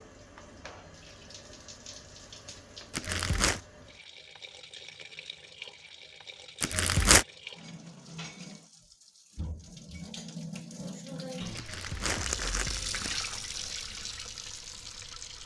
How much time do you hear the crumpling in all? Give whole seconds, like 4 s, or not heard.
3 s.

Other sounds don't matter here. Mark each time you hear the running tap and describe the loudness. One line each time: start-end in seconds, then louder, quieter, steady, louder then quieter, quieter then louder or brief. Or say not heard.
0.0-15.4 louder.